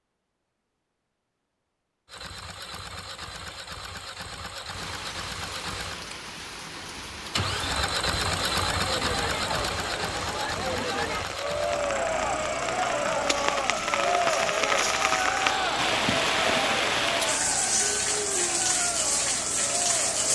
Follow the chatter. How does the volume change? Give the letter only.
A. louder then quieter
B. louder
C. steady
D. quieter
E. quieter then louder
A.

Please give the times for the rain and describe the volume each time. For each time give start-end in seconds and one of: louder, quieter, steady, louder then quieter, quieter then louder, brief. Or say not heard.
4.7-20.3 louder.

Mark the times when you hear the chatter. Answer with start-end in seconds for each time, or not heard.
7.8-20.3.